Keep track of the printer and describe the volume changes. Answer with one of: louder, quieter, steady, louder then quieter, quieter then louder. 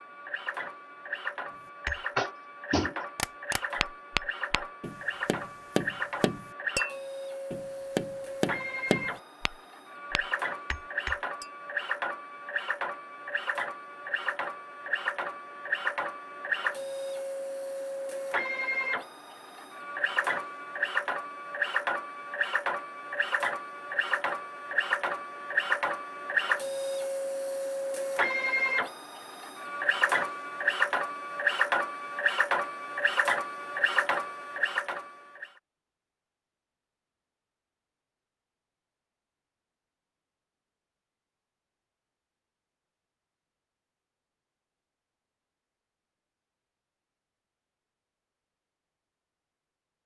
louder.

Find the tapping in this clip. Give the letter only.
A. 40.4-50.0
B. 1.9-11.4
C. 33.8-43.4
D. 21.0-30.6
B.